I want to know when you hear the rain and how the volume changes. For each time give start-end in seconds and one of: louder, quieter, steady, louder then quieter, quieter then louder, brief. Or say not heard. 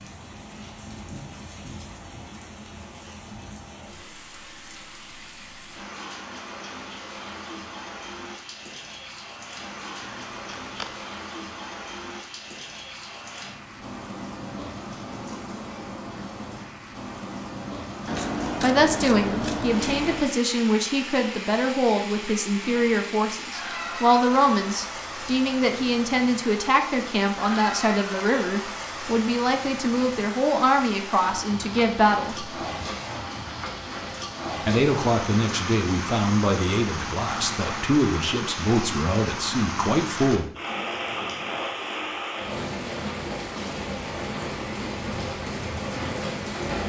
0.0-46.8 louder.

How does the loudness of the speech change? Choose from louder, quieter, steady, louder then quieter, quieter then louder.
steady.